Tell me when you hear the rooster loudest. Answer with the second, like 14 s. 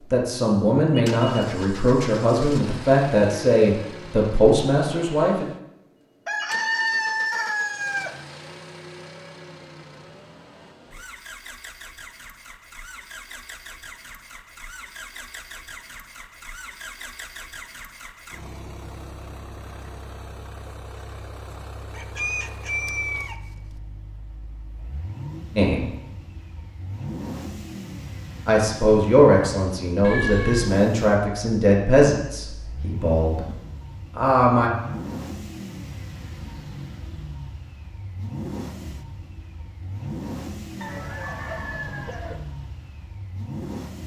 7 s.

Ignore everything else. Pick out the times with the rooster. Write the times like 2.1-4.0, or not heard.
6.2-8.2, 21.9-23.8, 40.8-42.4.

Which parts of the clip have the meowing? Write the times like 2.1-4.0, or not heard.
30.0-30.7.